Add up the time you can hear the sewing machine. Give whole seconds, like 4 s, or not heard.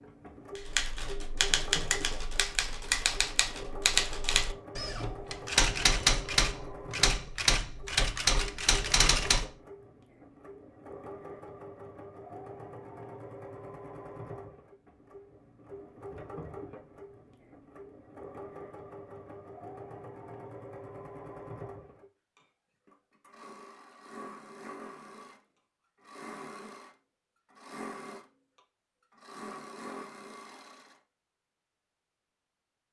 31 s.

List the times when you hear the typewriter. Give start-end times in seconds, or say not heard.
0.6-9.5.